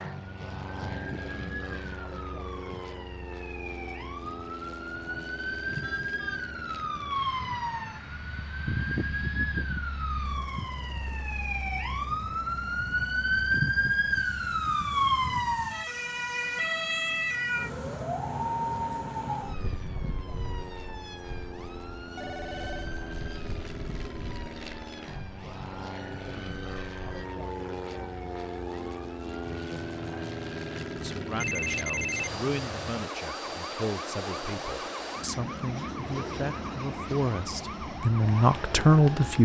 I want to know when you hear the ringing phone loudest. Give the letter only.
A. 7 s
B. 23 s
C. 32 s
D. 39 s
C.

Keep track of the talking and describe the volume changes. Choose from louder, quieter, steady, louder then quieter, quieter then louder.
louder.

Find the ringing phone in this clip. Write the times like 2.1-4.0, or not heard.
5.8-6.5, 22.1-22.9, 31.4-32.4.